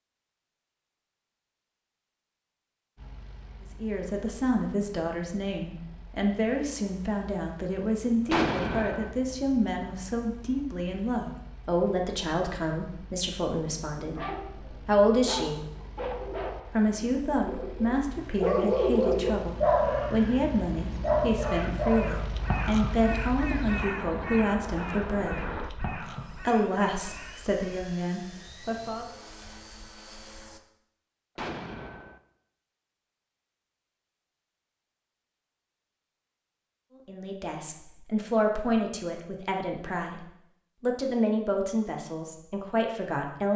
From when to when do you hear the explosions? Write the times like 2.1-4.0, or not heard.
8.3-9.2, 31.4-32.2.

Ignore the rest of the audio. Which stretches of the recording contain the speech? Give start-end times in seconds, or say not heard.
3.8-15.6, 16.7-25.5, 26.4-29.1, 37.0-43.5.